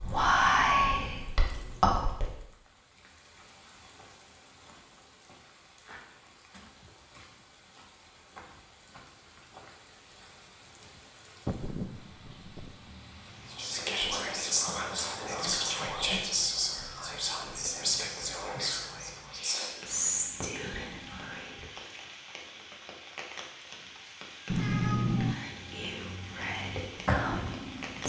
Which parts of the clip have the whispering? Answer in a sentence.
The whispering can be heard from 0.0 to 2.3 s, from 13.5 to 21.6 s and from 25.2 to 28.0 s.